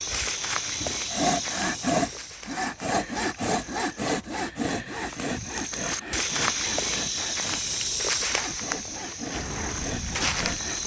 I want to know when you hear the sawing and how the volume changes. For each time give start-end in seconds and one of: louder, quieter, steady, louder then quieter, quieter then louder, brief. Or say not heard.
0.7-10.8 quieter.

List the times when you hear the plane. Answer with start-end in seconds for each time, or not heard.
9.3-10.8.